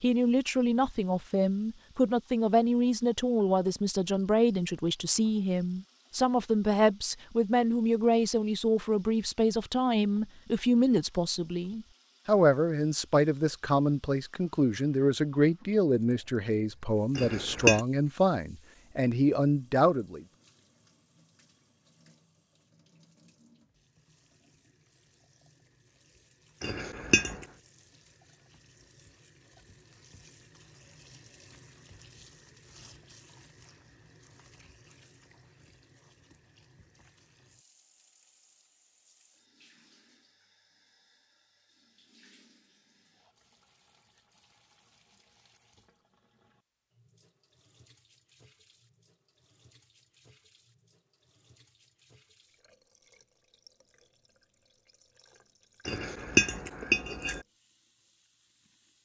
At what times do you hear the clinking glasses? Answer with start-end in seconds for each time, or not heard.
17.1-17.8, 26.6-27.4, 55.9-57.4.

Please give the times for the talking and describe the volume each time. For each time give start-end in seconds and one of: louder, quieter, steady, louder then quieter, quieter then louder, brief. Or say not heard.
0.0-20.2 steady.